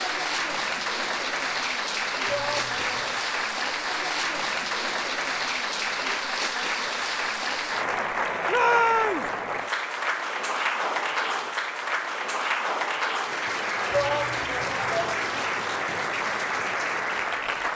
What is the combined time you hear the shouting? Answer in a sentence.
The shouting can be heard for 3 seconds in total.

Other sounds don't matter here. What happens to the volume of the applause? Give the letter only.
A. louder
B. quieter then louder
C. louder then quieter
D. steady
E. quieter
D.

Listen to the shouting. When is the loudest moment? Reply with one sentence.
The volume of the shouting peaks at 9 seconds.